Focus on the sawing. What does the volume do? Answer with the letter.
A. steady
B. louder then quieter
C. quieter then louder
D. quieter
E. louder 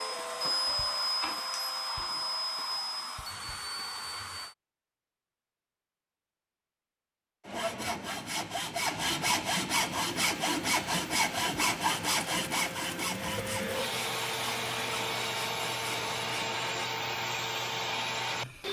D.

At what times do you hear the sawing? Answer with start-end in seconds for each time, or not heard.
7.5-16.9.